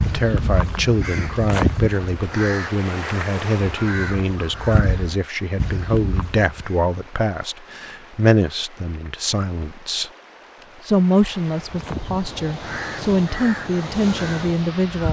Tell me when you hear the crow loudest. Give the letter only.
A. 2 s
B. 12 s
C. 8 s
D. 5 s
A.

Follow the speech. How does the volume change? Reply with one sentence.
The loudness of the speech stays about the same.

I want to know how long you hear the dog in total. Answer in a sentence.
The dog can't be heard in this clip.